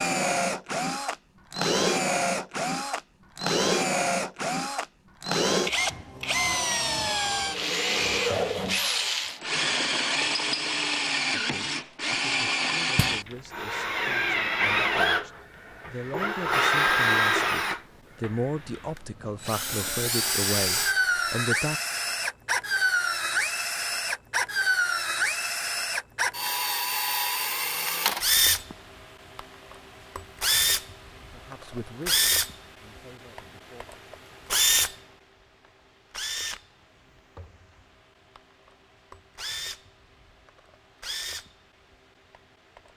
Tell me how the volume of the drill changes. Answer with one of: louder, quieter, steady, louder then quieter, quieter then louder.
quieter.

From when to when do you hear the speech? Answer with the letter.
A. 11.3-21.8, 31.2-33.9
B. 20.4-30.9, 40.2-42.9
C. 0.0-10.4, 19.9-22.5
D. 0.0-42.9
A.